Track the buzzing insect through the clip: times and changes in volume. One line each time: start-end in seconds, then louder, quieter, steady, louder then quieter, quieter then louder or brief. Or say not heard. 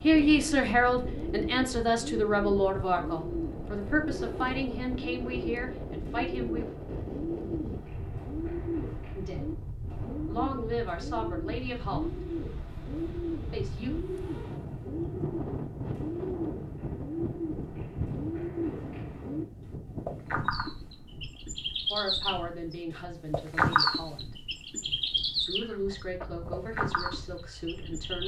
not heard.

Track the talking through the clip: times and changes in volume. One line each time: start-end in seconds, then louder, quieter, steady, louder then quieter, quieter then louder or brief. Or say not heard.
0.0-6.7 quieter
9.2-9.6 brief
10.2-12.2 brief
13.5-13.9 brief
21.9-24.4 brief
25.4-28.2 brief.